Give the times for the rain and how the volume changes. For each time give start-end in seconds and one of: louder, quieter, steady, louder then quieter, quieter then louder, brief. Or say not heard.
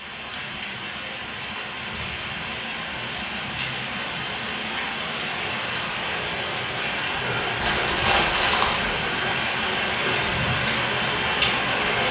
0.0-12.0 louder.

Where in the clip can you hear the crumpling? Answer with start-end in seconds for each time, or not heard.
7.6-9.0.